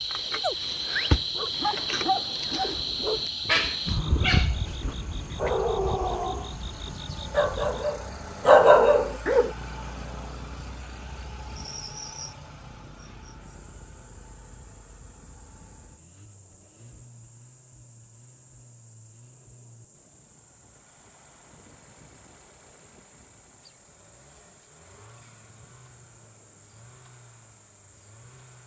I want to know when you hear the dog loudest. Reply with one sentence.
The volume of the dog peaks at 9 seconds.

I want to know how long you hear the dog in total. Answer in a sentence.
You can hear the dog for 8 seconds altogether.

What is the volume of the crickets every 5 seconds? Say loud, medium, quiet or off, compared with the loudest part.
loud, medium, quiet, quiet, quiet, quiet.